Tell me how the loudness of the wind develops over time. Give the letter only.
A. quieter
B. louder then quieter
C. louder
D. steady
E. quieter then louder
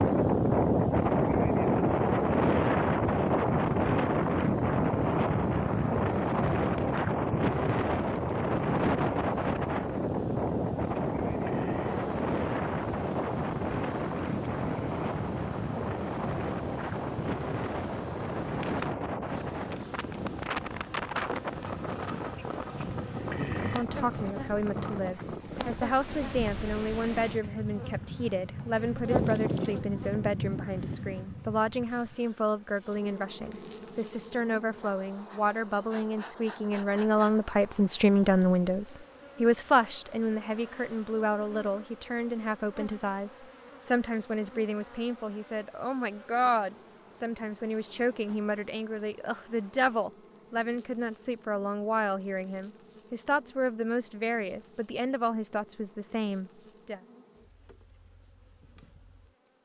A.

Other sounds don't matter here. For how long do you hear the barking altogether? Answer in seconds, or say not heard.
not heard.